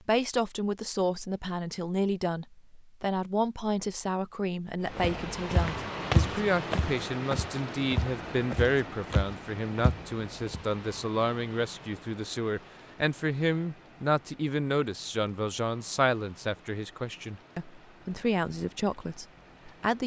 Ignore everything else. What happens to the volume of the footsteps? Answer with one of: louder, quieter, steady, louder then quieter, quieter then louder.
quieter.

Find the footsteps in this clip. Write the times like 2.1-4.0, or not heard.
5.0-10.7.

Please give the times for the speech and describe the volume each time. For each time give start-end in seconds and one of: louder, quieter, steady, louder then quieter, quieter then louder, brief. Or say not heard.
0.1-20.0 steady.